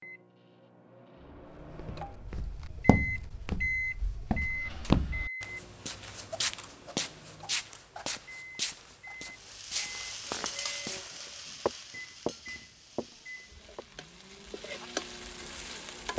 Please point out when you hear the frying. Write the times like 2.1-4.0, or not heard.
9.3-16.1.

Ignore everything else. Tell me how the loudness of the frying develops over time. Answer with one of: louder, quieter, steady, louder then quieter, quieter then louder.
quieter then louder.